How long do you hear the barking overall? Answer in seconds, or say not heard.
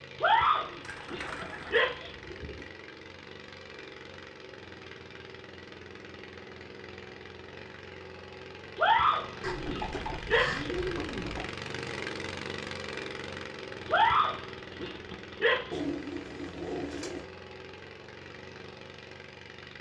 6 s.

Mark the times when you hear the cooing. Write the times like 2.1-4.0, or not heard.
0.2-2.7, 9.4-11.4, 15.7-17.2.